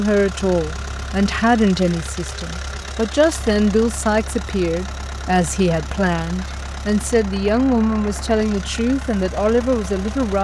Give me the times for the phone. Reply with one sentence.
The phone can't be heard in this clip.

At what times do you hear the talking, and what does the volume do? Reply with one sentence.
You can hear the talking from 0.0 to 10.3 s, at a steady volume.